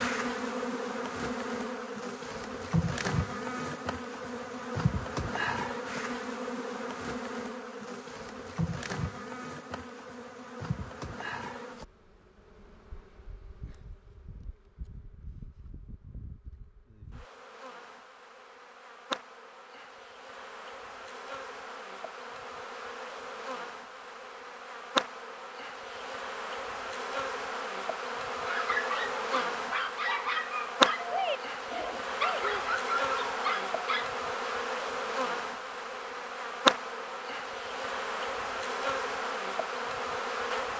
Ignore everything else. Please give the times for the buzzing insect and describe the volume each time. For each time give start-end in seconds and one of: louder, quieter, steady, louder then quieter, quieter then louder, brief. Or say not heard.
0.0-40.7 quieter then louder.